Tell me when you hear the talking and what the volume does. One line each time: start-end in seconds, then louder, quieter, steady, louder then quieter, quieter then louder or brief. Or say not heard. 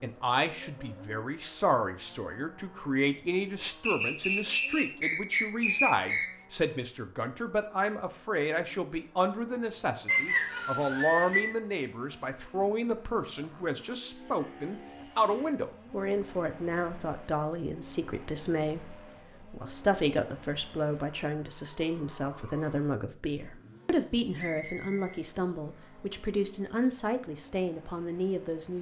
0.0-28.7 steady.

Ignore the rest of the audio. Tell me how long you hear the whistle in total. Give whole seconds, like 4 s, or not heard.
5 s.